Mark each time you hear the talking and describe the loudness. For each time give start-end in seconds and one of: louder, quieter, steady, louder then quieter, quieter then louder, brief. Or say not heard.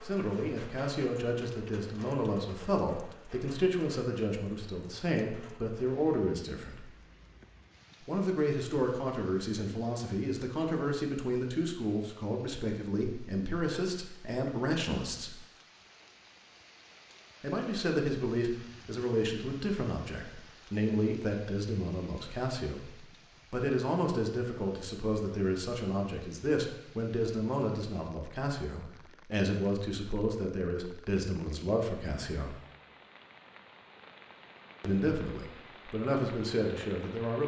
0.0-6.8 steady
8.1-15.3 steady
17.4-32.5 steady
34.8-37.4 brief.